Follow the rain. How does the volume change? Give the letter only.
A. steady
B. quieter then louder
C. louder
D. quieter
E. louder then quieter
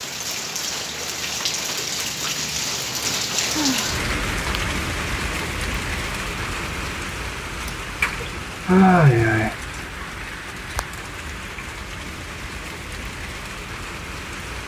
D.